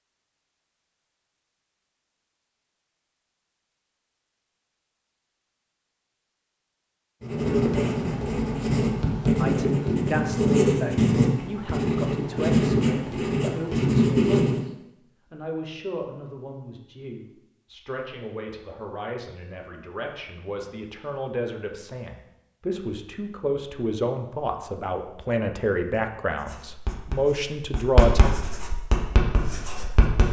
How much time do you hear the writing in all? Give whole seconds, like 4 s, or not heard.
11 s.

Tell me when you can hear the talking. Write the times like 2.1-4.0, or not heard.
9.3-28.3.